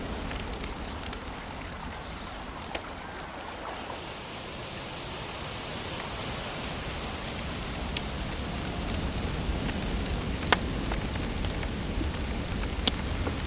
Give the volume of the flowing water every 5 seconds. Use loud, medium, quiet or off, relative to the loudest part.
loud, loud, medium.